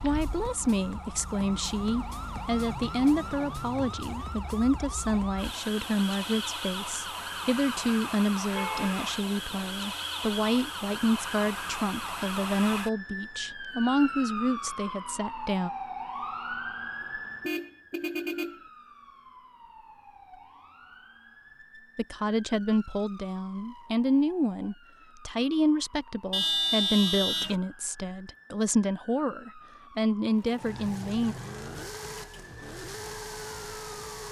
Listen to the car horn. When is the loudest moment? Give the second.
27 s.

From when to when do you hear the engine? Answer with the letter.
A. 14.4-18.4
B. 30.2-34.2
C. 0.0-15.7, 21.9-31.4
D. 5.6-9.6
B.